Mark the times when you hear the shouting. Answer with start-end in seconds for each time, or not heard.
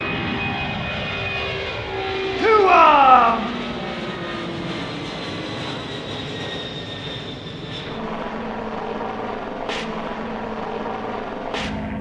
2.4-3.5.